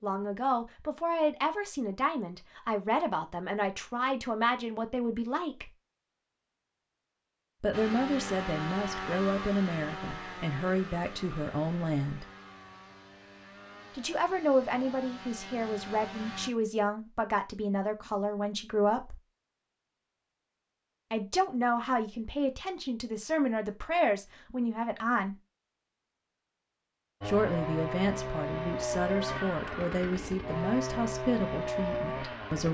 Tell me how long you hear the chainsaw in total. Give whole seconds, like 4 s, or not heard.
14 s.